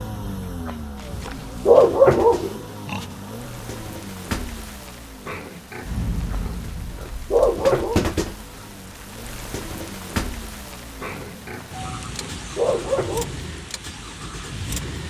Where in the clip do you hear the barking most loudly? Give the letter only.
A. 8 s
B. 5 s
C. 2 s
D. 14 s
C.